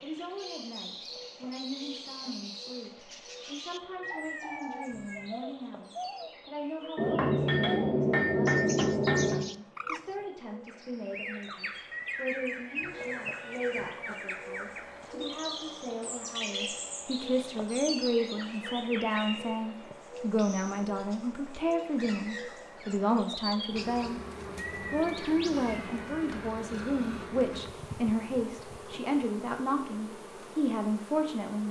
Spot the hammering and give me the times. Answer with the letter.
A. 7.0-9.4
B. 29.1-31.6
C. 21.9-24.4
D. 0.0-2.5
A.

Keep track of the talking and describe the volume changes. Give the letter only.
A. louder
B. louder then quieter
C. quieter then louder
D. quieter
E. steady
A.